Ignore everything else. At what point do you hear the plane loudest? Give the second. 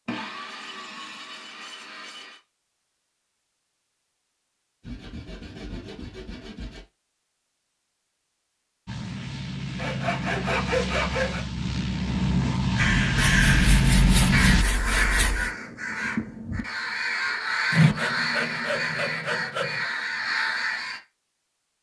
14 s.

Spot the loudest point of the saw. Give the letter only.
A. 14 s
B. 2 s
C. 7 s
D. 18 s
D.